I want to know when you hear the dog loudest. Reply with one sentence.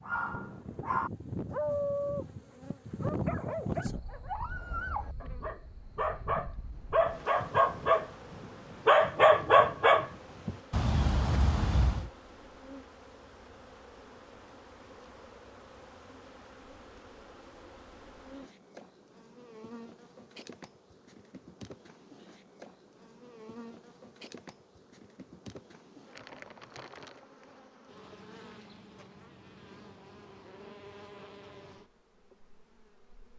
The volume of the dog peaks at 9 seconds.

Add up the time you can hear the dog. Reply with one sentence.
You can hear the dog for 12 seconds altogether.